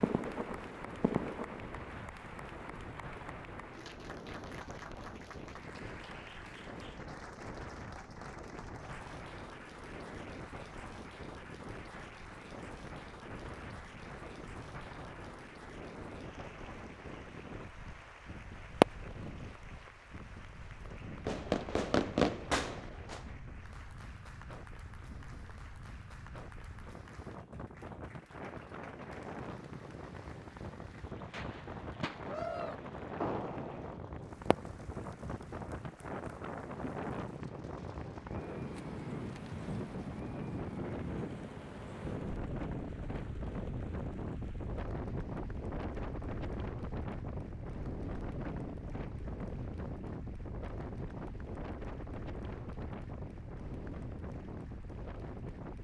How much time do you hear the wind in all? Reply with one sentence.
You can hear the wind for 56 seconds altogether.